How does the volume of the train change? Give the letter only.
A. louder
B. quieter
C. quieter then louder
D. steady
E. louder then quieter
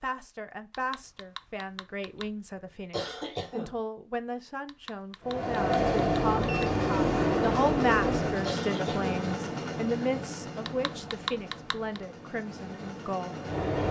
B.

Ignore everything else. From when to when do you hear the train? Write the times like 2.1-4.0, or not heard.
5.2-13.8.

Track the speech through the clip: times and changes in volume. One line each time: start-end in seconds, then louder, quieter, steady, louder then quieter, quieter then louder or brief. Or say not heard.
0.0-13.4 louder then quieter.